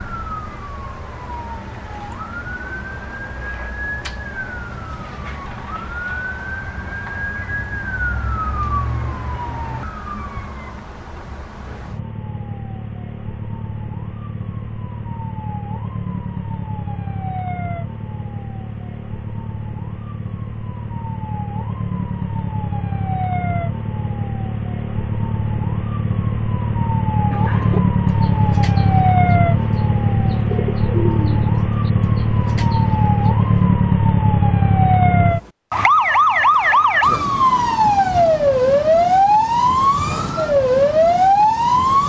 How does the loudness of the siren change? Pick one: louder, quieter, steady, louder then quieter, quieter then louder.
louder.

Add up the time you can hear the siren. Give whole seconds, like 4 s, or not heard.
42 s.